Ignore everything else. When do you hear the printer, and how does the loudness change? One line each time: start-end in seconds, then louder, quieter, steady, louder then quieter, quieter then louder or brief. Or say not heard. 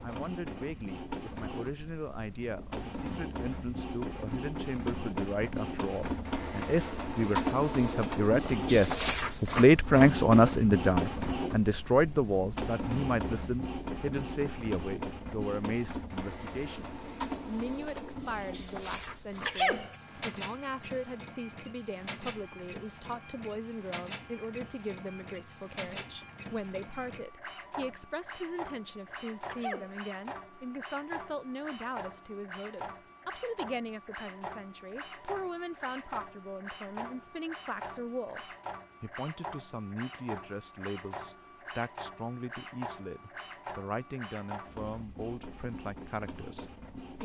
0.0-47.1 quieter.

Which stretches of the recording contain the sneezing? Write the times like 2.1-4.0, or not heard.
19.4-19.9, 29.4-30.0.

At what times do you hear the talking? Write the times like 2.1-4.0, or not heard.
0.0-47.1.